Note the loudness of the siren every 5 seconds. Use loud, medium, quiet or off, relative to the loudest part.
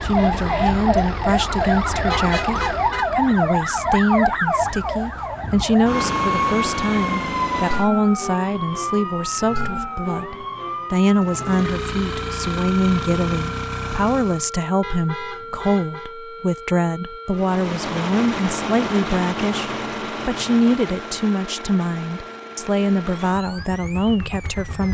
loud, loud, medium, quiet, quiet.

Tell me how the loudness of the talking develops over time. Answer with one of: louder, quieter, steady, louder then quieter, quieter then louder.
steady.